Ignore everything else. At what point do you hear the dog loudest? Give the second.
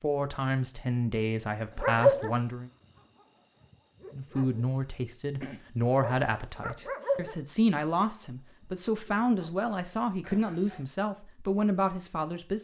2 s.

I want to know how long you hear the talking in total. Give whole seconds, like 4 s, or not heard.
11 s.